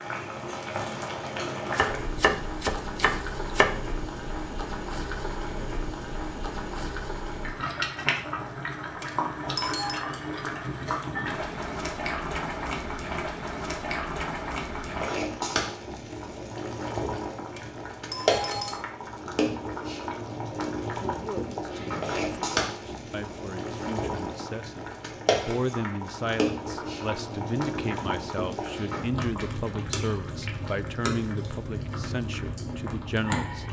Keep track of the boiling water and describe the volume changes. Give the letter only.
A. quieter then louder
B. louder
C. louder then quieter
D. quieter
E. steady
E.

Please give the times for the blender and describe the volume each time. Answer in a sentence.
You can't hear the blender here.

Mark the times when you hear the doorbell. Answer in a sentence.
You can hear the doorbell from 8.9 to 10.1 s and from 17.4 to 18.9 s.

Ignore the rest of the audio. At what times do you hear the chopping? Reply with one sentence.
The chopping can be heard from 1.8 to 3.7 s.